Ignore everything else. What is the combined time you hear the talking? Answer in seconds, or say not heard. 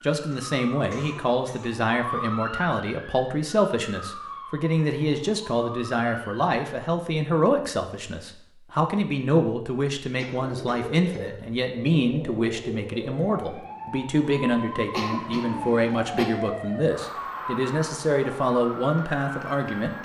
20 s.